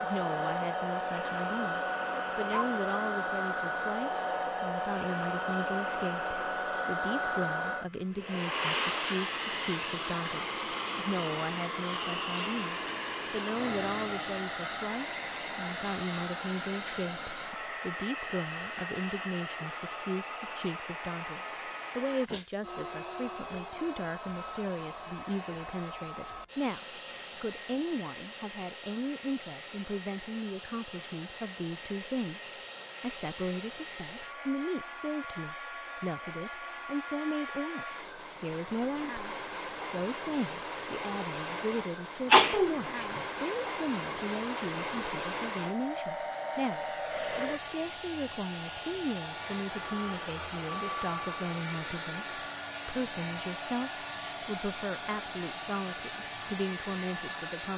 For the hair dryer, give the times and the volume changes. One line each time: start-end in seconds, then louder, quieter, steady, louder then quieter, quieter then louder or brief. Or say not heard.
0.0-57.7 quieter then louder.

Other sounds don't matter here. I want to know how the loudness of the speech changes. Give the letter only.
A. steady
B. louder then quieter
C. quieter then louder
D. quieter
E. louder
A.